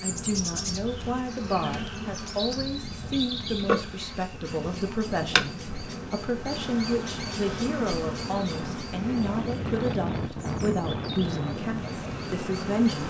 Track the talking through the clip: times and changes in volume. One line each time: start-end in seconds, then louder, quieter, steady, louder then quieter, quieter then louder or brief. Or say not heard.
0.0-13.0 steady.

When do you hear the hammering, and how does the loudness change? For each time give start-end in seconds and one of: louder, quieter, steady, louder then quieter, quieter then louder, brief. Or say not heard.
not heard.